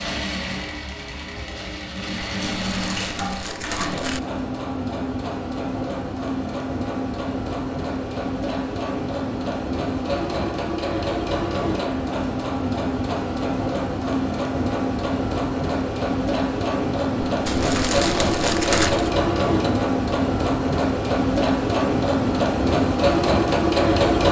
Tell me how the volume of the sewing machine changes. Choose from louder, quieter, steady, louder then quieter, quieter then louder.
louder.